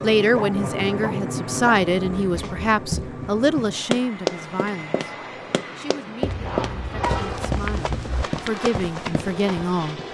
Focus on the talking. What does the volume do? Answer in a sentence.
The volume of the talking goes down, then up.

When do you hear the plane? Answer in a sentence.
You can hear the plane from 0.0 to 10.1 s.